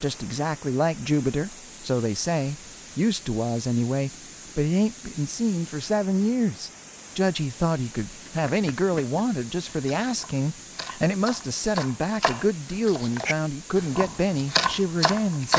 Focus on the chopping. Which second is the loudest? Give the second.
15 s.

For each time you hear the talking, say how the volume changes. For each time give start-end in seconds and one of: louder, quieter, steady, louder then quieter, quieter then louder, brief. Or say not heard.
0.0-15.5 steady.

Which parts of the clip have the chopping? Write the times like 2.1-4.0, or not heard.
8.2-15.5.